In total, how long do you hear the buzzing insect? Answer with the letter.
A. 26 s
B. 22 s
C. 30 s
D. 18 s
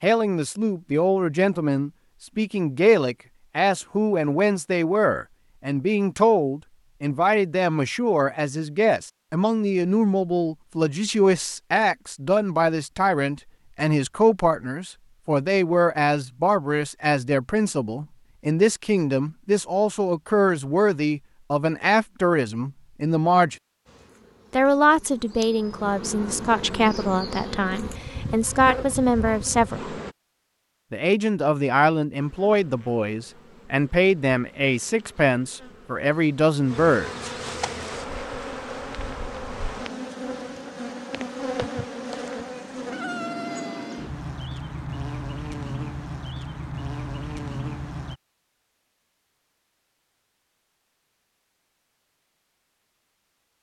B.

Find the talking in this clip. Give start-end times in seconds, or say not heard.
0.0-23.6, 24.5-29.9, 30.9-37.1.